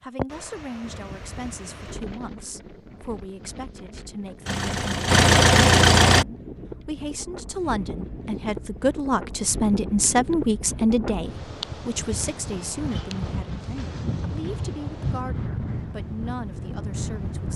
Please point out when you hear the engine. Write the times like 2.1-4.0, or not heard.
4.5-6.2.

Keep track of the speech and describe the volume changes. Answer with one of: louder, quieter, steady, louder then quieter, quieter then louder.
louder then quieter.